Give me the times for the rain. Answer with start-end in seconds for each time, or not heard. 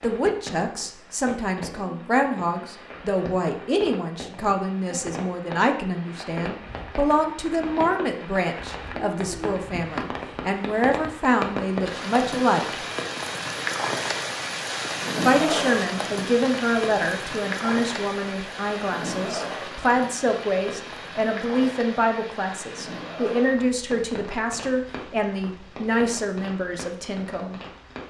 0.0-28.0.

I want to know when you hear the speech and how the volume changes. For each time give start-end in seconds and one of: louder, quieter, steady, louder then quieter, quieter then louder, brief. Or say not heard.
0.0-12.8 steady
15.2-27.6 steady.